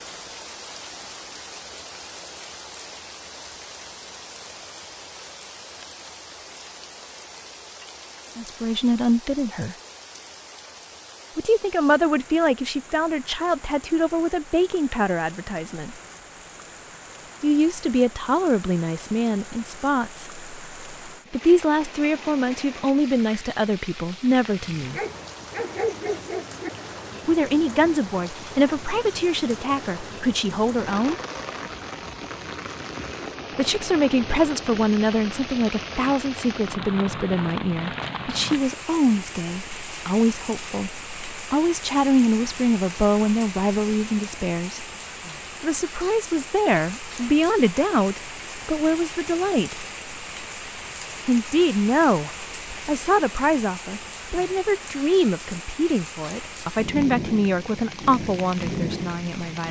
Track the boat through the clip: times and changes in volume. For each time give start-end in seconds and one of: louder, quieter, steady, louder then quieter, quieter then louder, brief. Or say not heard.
not heard.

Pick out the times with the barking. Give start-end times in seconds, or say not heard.
24.9-26.7.